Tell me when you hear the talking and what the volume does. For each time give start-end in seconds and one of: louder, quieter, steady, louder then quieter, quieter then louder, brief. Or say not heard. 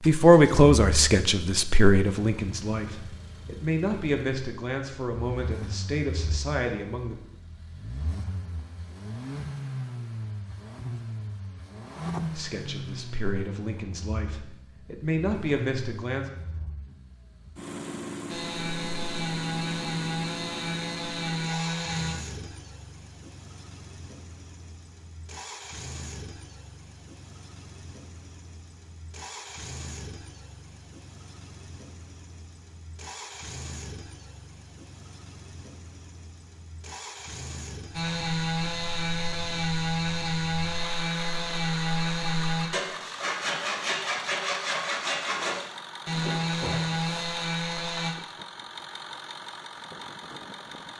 0.0-7.2 quieter
12.3-16.3 louder.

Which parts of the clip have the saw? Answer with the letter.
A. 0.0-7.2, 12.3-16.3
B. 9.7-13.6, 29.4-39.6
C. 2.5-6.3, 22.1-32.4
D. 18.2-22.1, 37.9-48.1
D.